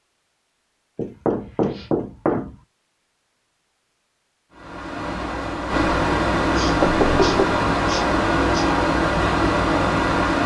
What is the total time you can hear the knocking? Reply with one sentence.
You can hear the knocking for 2 seconds altogether.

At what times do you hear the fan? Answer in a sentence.
You can hear the fan from 4.5 to 10.4 s.